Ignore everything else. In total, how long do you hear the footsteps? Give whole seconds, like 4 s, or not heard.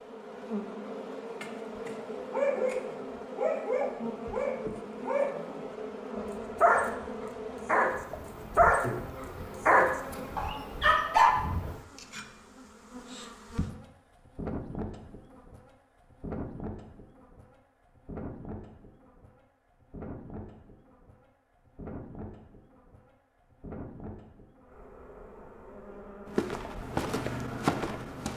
2 s.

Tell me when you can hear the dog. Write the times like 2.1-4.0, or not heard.
1.4-11.3.